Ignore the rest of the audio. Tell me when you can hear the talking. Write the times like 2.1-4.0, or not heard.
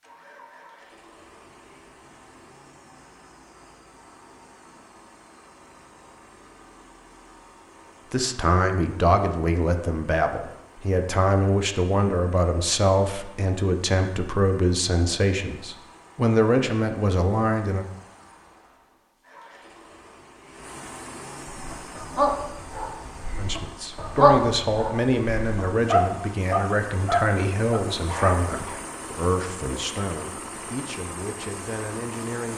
8.1-17.9, 23.4-32.5.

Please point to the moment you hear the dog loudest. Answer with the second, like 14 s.
24 s.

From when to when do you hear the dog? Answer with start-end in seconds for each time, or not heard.
21.5-28.8.